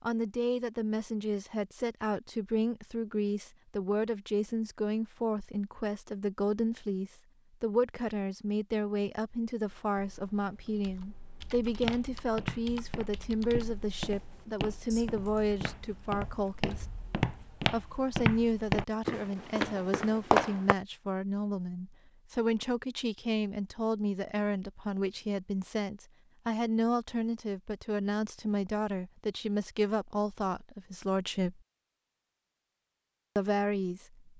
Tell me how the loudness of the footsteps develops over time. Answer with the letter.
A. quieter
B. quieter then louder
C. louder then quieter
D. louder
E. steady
D.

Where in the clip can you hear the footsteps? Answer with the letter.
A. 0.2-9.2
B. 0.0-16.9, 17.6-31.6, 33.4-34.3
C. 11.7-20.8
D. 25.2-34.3
C.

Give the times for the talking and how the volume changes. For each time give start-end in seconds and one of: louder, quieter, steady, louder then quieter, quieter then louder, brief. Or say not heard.
0.0-16.9 steady
17.6-31.6 steady
33.4-34.3 brief.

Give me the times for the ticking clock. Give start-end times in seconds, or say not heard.
not heard.